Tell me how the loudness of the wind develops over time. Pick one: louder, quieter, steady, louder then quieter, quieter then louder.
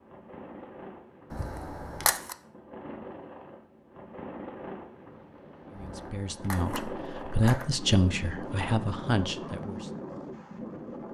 louder.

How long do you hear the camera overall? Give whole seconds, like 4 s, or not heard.
3 s.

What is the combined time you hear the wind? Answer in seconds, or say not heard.
11 s.